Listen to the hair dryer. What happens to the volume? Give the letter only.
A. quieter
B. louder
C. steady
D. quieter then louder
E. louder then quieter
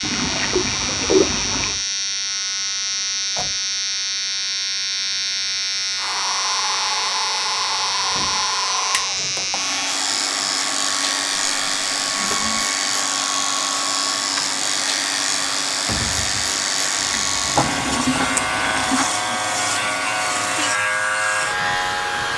C.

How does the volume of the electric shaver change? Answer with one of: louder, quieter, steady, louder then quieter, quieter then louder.
steady.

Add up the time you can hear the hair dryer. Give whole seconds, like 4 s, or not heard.
16 s.